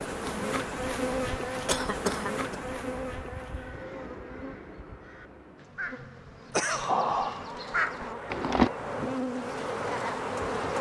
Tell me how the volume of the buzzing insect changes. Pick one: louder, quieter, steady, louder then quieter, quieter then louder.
quieter then louder.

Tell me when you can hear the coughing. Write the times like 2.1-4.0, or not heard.
1.6-2.6, 6.5-6.9.